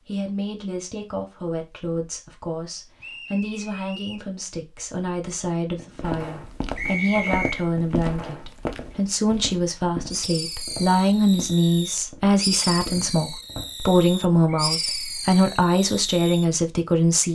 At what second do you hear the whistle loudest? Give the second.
7 s.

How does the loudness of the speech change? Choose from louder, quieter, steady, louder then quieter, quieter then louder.
louder.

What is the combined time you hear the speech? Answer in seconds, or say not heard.
17 s.